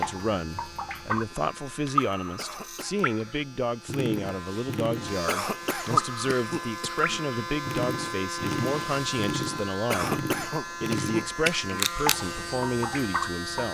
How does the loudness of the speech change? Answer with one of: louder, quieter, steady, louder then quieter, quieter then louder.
steady.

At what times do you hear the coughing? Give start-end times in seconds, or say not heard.
2.4-3.0, 5.2-7.2, 9.9-11.8.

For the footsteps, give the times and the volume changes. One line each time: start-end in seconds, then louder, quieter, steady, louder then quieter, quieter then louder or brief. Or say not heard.
not heard.